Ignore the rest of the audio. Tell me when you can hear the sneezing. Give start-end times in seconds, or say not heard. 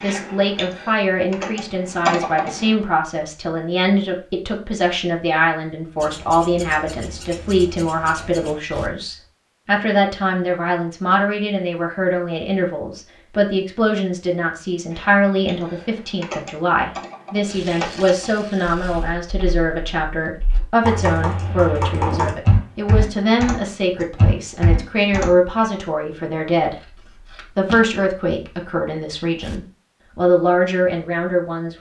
not heard.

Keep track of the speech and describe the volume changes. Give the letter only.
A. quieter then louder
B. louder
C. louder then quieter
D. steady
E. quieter
D.